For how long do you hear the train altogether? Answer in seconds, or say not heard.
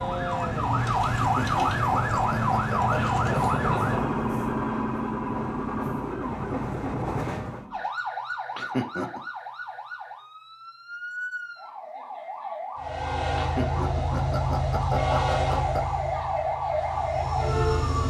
13 s.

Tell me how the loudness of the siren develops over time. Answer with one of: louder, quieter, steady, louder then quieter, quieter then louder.
quieter then louder.